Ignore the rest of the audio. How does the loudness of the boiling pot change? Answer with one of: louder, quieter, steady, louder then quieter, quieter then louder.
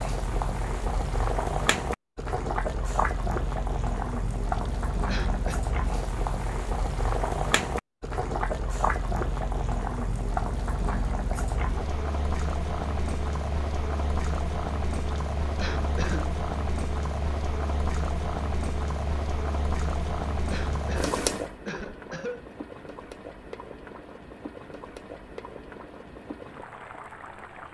quieter.